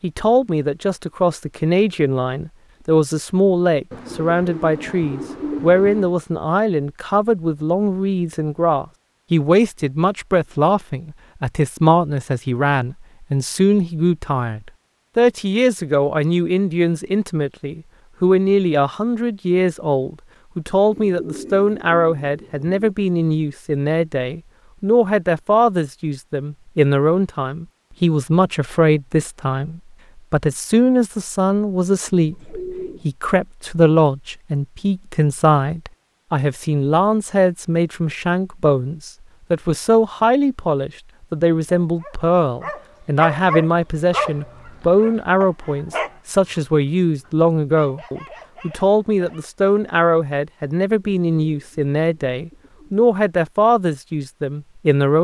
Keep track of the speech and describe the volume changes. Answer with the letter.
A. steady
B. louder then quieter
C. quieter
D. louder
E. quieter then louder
A.